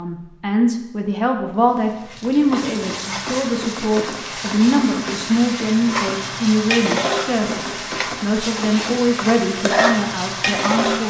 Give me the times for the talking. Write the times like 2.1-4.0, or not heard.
0.0-11.0.